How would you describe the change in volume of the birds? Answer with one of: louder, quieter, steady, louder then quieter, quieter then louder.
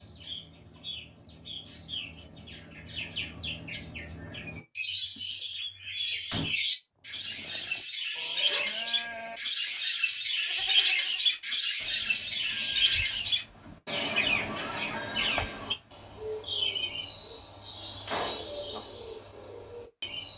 louder then quieter.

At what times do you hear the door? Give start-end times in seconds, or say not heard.
6.1-6.5, 17.8-18.9.